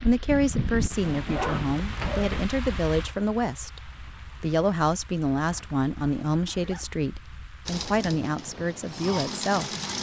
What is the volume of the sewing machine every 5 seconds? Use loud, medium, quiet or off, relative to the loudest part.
off, loud.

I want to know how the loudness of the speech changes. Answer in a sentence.
The volume of the speech stays about the same.